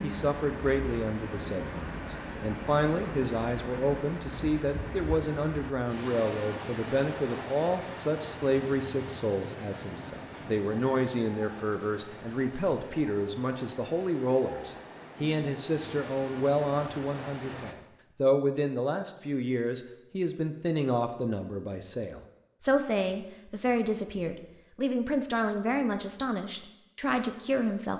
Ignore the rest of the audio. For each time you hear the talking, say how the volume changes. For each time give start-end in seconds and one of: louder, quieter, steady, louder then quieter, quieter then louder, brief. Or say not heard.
0.0-27.9 steady.